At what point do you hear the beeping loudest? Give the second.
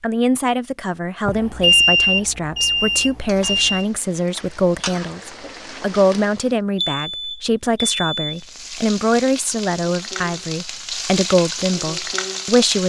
2 s.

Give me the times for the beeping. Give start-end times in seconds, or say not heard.
1.2-3.9, 6.8-8.4.